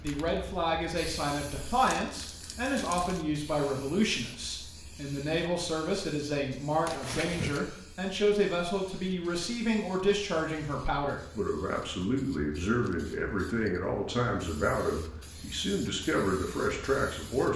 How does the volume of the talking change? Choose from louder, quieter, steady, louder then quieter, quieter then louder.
steady.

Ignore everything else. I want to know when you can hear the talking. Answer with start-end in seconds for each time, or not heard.
0.0-17.5.